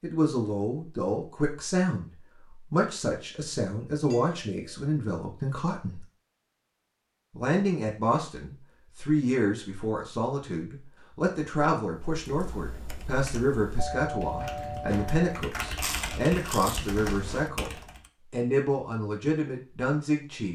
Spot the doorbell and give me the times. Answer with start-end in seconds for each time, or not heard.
4.0-4.8, 13.8-15.3.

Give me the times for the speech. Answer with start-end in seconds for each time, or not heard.
0.0-6.0, 7.3-17.7, 18.3-20.5.